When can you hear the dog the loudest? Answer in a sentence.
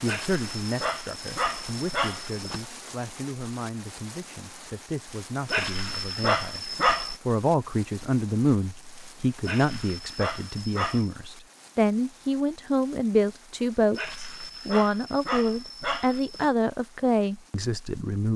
The volume of the dog peaks at 7 seconds.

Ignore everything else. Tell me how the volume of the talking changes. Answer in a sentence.
The volume of the talking goes up.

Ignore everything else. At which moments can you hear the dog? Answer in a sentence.
The dog can be heard from 0.1 to 2.6 s, from 5.5 to 7.2 s, from 9.4 to 11.1 s and from 13.9 to 16.5 s.